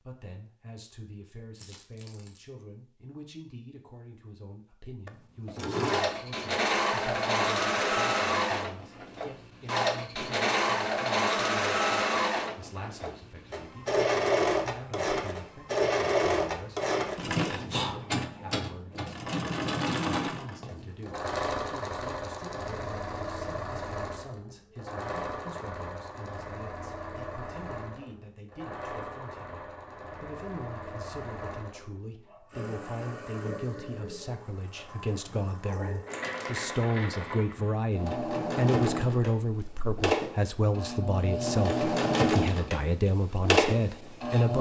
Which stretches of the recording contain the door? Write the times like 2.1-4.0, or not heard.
not heard.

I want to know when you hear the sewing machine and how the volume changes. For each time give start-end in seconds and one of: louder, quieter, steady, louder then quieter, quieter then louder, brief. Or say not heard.
5.0-44.5 quieter then louder.